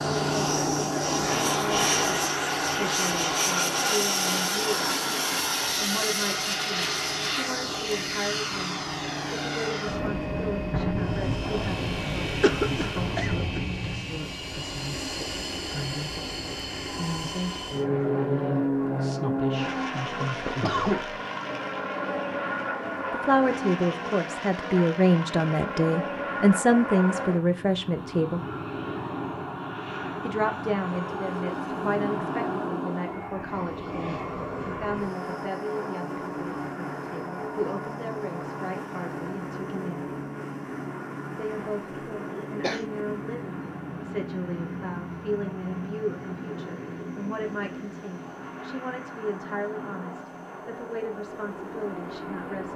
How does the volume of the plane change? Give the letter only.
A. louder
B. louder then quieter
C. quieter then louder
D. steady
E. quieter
E.